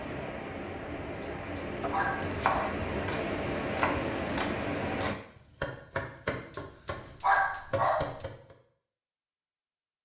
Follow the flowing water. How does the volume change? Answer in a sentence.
The loudness of the flowing water goes up.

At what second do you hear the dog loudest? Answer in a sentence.
The loudest moment of the dog is at 7 seconds.